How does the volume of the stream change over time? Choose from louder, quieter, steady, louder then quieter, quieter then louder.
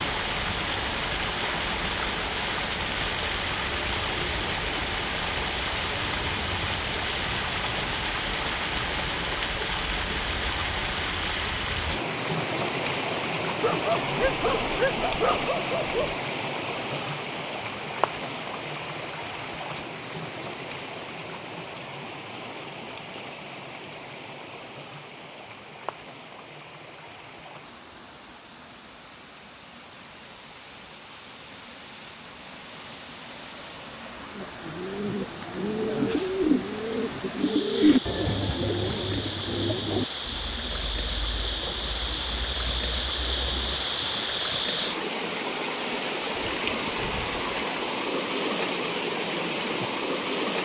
quieter then louder.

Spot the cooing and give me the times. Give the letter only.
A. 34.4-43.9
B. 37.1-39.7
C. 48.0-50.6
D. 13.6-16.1
A.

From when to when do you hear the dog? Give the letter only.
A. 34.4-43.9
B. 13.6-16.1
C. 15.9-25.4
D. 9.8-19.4
B.